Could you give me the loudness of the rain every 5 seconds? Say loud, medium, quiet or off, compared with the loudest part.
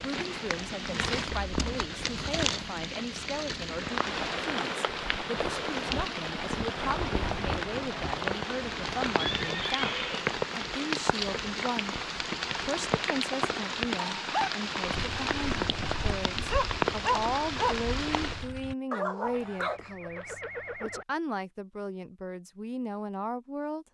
loud, loud, loud, loud, off.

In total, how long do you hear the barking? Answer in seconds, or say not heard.
6 s.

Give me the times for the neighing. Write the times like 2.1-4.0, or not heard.
1.2-1.6, 9.2-10.3, 19.2-21.1.